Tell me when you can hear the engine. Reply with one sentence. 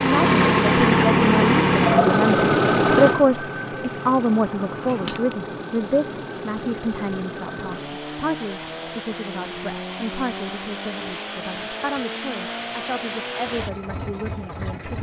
You can hear the engine from 0.0 to 14.9 s.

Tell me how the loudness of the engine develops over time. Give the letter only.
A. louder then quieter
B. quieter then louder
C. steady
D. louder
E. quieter
E.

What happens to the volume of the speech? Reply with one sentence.
The loudness of the speech goes down.